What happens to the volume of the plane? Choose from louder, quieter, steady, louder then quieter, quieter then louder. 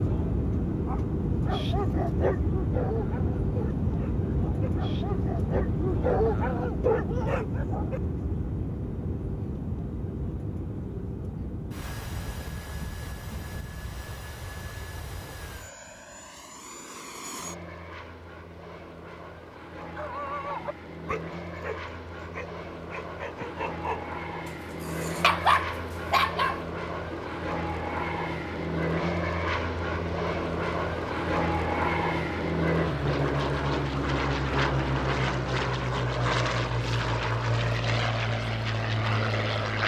quieter then louder.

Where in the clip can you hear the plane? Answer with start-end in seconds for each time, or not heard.
0.0-39.8.